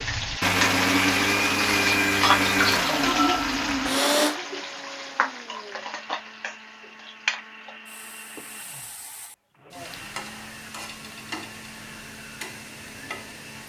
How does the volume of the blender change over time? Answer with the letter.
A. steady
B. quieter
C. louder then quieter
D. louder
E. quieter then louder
B.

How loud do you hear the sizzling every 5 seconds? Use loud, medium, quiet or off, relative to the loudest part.
loud, medium, quiet.